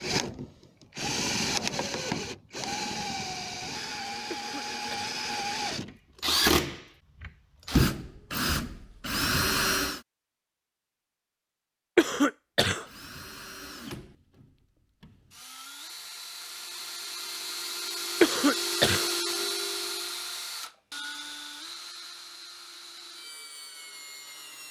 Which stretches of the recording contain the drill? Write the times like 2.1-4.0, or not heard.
0.0-10.0, 12.8-24.6.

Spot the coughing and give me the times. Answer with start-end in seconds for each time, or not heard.
4.3-5.2, 11.9-12.8, 18.2-19.1.